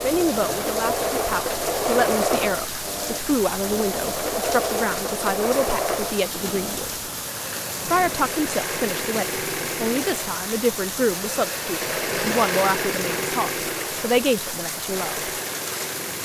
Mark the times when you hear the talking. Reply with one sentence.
The talking can be heard from 0.0 to 7.1 s and from 7.8 to 15.3 s.